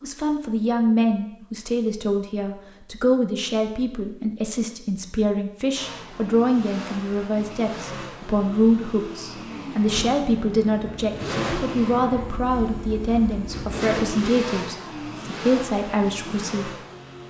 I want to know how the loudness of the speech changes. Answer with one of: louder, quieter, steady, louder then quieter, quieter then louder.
steady.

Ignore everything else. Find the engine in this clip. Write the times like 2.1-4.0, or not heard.
5.7-17.2.